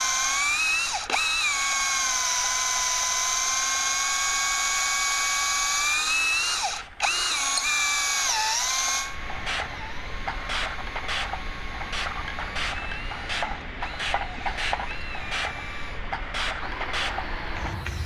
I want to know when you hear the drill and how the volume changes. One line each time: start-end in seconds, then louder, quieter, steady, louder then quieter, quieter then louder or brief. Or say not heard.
0.0-18.0 quieter.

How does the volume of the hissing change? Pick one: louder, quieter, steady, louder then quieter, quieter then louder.
louder.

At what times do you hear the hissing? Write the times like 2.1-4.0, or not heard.
0.0-18.0.